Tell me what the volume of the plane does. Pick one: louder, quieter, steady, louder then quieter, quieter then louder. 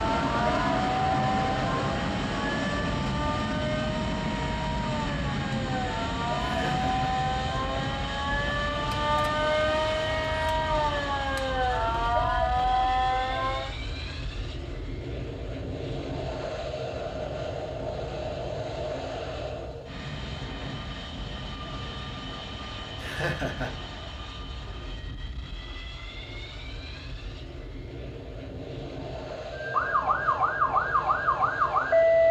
quieter.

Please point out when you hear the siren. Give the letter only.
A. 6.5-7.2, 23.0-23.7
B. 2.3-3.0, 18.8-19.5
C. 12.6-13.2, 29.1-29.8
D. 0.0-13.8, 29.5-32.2
D.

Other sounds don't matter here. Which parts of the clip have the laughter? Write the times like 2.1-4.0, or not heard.
6.5-7.2, 23.0-23.7.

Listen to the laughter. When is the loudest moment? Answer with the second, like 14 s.
23 s.